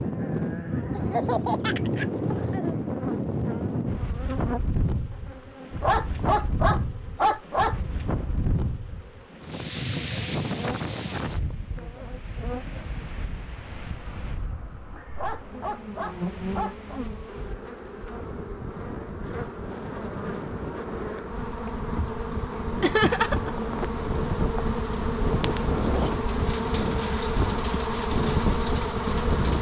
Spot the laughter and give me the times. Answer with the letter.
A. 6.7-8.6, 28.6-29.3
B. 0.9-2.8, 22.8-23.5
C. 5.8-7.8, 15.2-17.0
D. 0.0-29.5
B.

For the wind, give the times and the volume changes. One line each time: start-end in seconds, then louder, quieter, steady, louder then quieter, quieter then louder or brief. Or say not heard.
0.0-29.5 quieter then louder.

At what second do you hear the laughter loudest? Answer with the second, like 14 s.
23 s.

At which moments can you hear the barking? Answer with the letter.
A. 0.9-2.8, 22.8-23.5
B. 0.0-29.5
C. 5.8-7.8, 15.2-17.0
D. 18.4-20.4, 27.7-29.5
C.